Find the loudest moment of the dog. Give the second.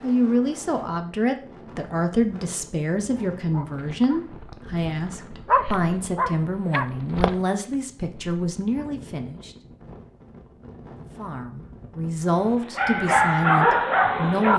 14 s.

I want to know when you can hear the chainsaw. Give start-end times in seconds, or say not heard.
not heard.